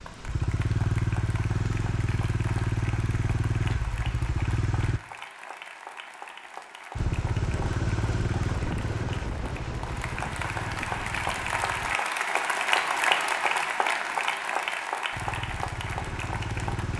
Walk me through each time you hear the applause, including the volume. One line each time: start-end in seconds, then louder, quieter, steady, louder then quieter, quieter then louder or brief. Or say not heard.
0.0-16.9 louder.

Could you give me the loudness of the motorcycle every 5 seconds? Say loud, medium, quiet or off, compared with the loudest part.
loud, loud, medium, medium.